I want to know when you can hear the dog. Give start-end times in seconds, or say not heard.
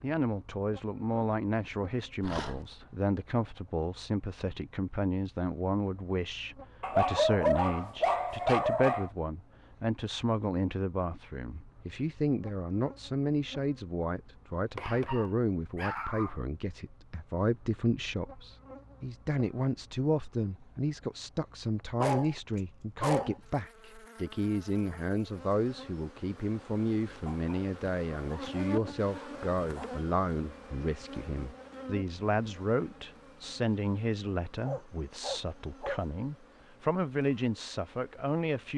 2.2-2.6, 6.8-9.1, 14.8-16.4, 21.9-23.4, 27.2-29.9, 34.6-36.0.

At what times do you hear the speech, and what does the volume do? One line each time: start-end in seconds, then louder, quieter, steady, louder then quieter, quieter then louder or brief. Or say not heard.
0.0-38.7 steady.